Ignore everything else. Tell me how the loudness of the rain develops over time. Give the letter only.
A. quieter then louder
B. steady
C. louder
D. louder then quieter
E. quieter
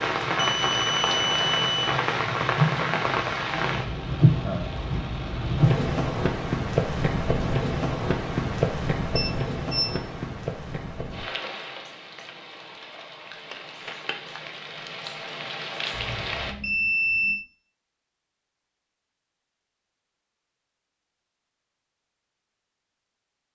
E.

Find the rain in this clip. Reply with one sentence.
The rain can be heard from 0.0 to 16.6 s.